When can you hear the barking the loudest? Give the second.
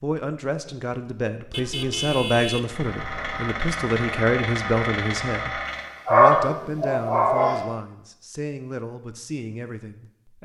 6 s.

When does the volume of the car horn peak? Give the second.
2 s.